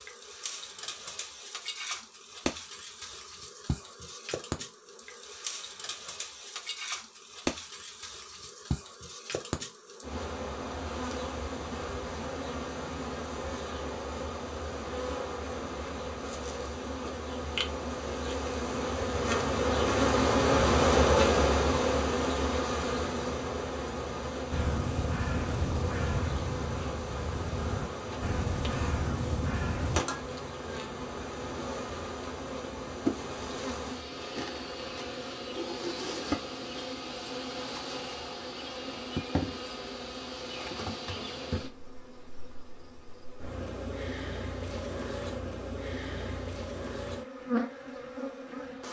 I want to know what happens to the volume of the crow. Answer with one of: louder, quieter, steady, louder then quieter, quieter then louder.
quieter then louder.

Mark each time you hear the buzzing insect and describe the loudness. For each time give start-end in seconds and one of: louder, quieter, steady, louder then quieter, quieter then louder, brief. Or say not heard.
0.0-48.8 louder then quieter.